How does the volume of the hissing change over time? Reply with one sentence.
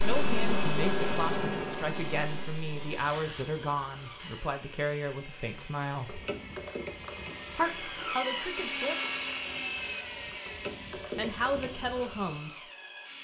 The volume of the hissing goes down.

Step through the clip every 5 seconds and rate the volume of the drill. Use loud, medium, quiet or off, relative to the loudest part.
medium, loud, medium.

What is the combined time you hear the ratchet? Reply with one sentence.
You can hear the ratchet for 7 seconds altogether.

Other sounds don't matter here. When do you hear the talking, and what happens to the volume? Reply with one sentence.
You can hear the talking from 0.0 to 6.2 s, at a steady volume; briefly from 7.5 to 8.9 s; and briefly from 10.9 to 12.7 s.